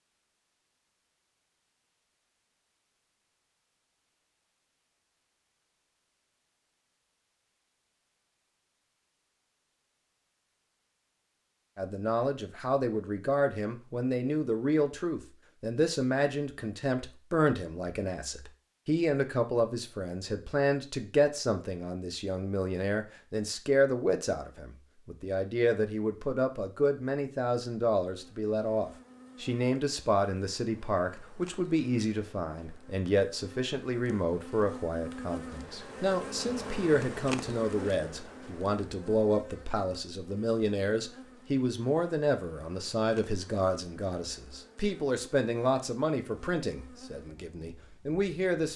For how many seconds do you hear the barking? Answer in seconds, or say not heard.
not heard.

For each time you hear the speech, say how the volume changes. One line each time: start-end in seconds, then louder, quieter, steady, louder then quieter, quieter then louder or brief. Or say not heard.
11.8-48.7 steady.